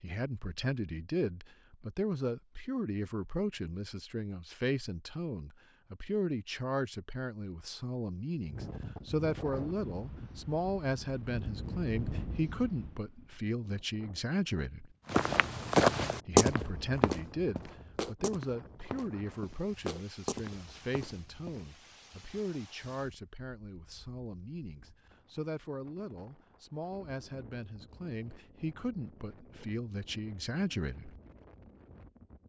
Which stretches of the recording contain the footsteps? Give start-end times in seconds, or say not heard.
15.1-21.6.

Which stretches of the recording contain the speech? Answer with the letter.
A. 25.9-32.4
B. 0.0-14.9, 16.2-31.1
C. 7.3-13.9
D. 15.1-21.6
B.